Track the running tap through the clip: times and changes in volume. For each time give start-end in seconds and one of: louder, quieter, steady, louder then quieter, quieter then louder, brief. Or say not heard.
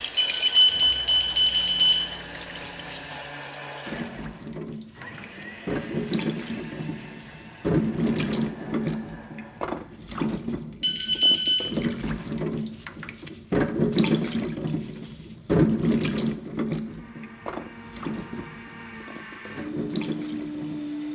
0.0-21.0 louder then quieter.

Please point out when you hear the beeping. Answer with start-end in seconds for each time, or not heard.
0.1-2.0, 10.8-11.7.